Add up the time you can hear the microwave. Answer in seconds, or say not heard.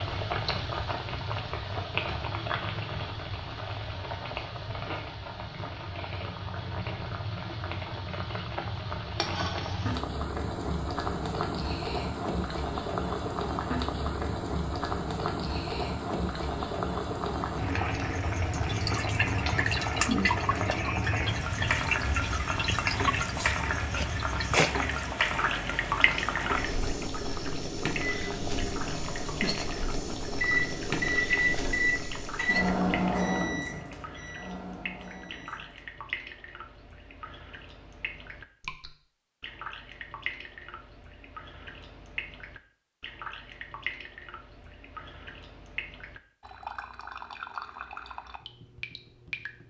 8 s.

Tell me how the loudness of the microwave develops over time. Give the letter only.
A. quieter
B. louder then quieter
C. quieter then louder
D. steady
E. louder
B.